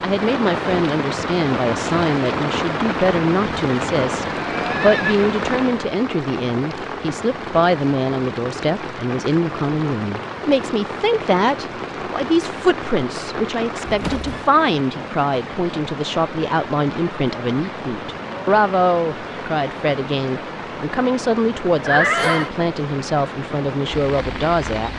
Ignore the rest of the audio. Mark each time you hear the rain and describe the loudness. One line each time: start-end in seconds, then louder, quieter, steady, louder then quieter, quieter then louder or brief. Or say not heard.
0.0-24.9 quieter.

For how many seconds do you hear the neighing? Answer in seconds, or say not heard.
2 s.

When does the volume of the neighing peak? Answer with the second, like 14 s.
22 s.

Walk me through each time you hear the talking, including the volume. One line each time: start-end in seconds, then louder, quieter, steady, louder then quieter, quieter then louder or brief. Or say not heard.
0.0-24.9 steady.